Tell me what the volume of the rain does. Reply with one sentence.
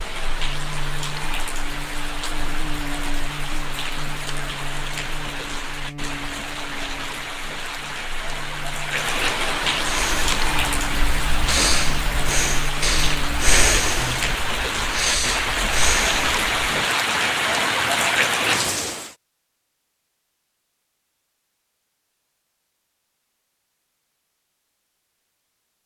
The loudness of the rain goes up.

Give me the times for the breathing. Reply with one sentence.
You can hear the breathing from 9.8 to 16.6 s.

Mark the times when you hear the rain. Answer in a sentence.
You can hear the rain from 0.0 to 19.1 s.